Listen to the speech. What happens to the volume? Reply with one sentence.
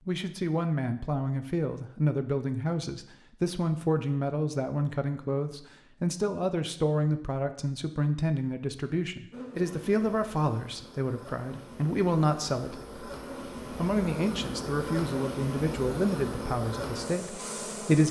The volume of the speech stays about the same.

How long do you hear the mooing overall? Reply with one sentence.
The mooing can't be heard in this clip.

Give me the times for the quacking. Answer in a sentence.
The quacking can't be heard in this clip.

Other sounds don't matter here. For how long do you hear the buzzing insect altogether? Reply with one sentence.
The buzzing insect can be heard for 9 seconds in total.